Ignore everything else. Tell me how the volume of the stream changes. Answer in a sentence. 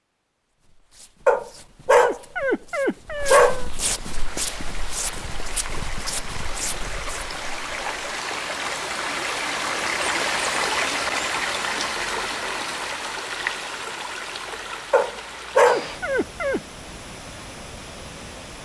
The loudness of the stream goes up, then down.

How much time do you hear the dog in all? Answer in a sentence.
The dog can be heard for 4 seconds in total.